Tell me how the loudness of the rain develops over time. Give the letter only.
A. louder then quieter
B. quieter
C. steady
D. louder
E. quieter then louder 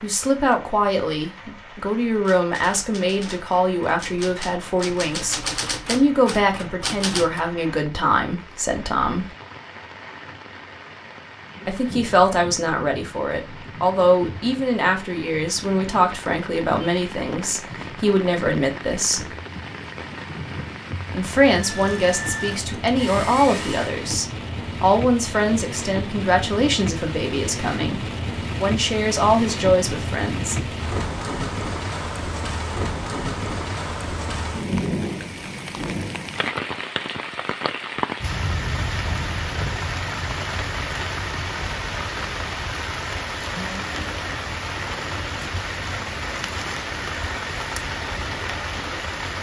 D.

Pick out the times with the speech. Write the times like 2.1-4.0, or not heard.
0.0-9.2, 11.7-19.3, 21.1-30.7.